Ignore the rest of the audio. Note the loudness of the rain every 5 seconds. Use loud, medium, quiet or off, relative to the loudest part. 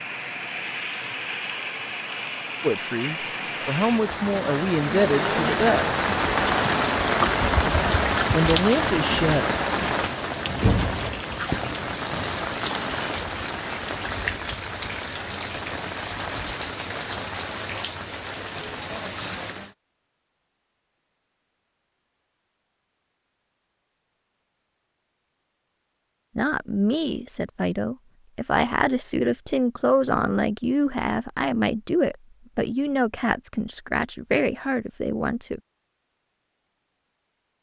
medium, loud, medium, medium, off, off, off, off.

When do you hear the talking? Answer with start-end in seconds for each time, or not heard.
2.6-6.0, 8.3-9.4, 26.4-35.6.